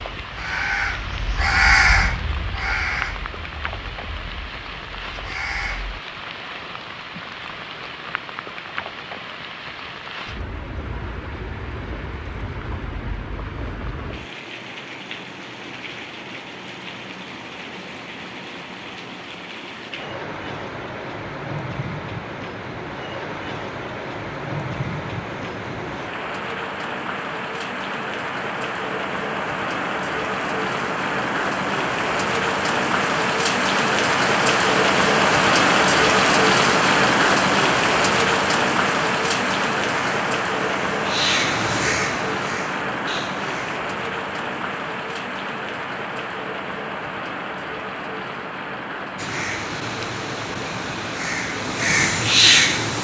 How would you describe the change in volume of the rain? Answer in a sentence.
The volume of the rain goes up, then down.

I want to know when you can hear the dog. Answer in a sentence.
You can't hear the dog here.